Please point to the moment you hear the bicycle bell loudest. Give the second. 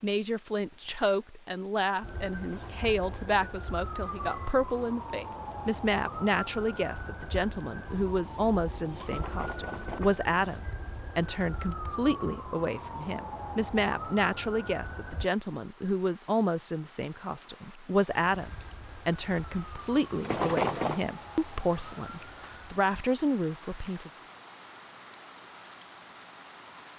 21 s.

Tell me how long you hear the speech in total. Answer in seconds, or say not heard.
24 s.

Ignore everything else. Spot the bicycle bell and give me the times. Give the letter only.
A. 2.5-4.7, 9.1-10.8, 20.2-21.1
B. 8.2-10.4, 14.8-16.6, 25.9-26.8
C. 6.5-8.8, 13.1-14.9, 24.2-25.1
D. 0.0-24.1
A.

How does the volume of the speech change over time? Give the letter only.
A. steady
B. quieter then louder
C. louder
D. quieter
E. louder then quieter
A.